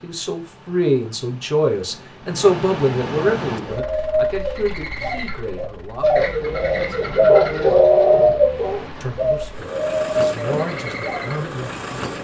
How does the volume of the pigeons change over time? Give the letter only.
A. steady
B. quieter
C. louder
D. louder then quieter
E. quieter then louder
D.